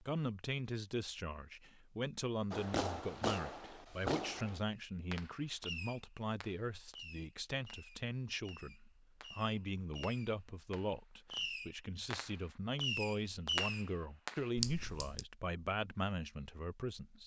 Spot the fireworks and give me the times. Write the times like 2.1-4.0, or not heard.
2.5-14.4.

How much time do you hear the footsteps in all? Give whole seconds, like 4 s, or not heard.
not heard.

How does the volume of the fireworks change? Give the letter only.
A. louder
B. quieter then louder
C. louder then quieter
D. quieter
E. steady
B.